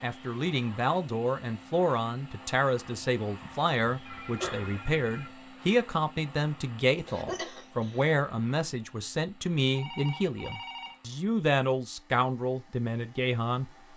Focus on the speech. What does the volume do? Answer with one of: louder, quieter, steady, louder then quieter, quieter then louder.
steady.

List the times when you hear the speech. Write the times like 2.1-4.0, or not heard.
0.0-13.7.